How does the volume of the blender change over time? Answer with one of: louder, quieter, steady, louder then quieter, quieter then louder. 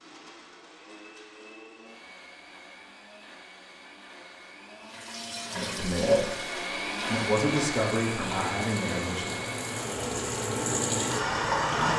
louder.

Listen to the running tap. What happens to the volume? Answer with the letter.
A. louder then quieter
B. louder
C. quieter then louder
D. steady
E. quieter
C.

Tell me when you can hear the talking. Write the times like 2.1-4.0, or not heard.
5.5-9.3.